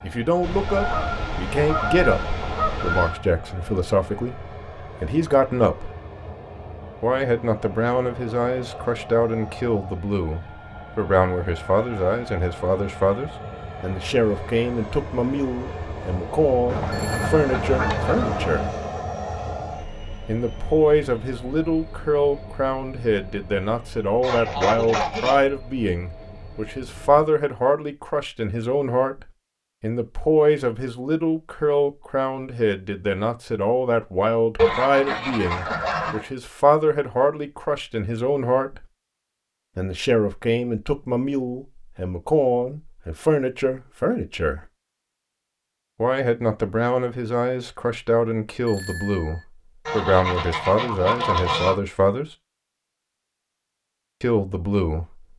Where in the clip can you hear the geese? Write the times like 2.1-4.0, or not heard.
0.4-3.2, 16.6-18.8, 24.2-25.4, 34.5-36.3, 49.9-51.8.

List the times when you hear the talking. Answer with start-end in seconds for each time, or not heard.
0.0-6.0, 7.0-18.7, 20.2-38.9, 39.8-44.6, 46.0-52.4, 54.2-55.2.